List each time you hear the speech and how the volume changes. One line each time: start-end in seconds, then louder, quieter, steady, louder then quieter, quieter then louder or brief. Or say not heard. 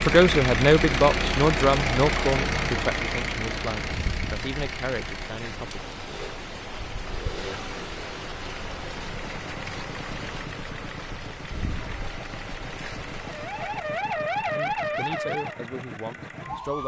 0.0-5.8 quieter
14.6-16.8 brief.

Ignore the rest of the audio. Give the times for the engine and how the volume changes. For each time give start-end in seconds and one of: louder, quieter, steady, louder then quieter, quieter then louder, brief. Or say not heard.
0.0-16.8 quieter.